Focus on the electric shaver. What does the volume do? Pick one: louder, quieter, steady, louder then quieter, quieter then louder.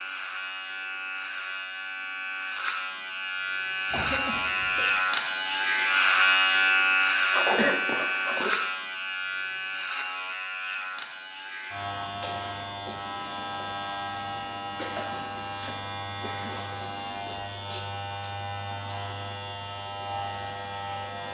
louder then quieter.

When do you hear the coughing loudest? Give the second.
8 s.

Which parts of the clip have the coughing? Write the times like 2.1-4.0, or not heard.
3.9-5.0, 7.3-8.6, 14.7-16.6.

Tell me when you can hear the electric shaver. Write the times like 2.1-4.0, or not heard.
0.0-21.2.